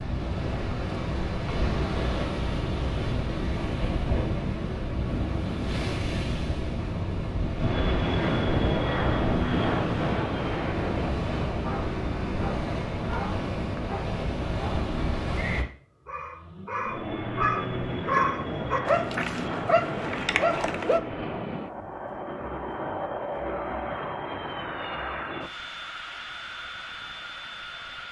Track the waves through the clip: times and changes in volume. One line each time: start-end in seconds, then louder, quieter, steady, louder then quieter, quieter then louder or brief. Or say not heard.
0.0-15.7 steady.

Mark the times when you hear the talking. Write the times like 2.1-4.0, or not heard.
not heard.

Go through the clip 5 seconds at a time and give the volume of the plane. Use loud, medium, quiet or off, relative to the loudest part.
off, loud, medium, medium, medium, medium.